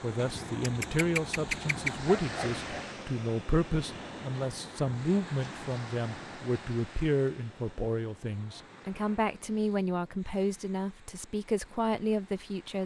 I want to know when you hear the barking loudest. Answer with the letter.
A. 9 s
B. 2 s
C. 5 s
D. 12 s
B.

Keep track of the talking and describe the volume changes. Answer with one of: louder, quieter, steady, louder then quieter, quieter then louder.
steady.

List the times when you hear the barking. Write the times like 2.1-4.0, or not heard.
0.6-2.9.